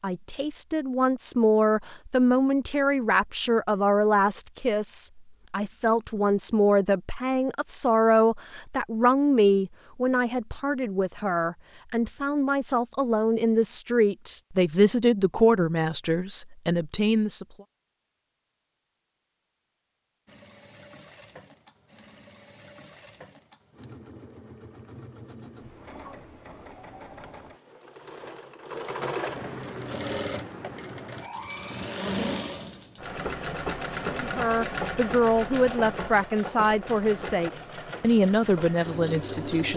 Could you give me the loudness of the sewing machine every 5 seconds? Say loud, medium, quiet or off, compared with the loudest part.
off, off, off, off, quiet, medium, loud, loud.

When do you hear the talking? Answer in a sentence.
The talking can be heard from 0.0 to 17.4 s and from 34.1 to 39.7 s.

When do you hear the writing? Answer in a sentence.
The writing can't be heard in this clip.